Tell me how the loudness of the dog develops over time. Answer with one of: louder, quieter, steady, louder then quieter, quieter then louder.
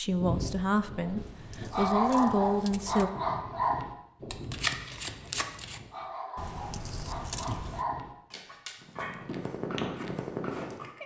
quieter then louder.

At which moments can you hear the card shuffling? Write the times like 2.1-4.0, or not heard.
4.3-5.8.